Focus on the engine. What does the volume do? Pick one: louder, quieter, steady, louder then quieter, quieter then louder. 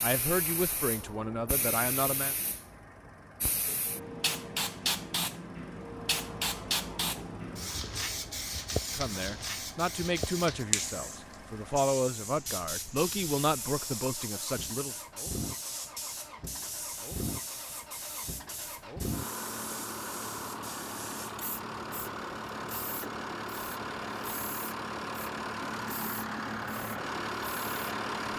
louder.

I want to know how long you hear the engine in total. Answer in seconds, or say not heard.
28 s.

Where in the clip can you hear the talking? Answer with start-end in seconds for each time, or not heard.
0.0-2.4, 8.9-14.9.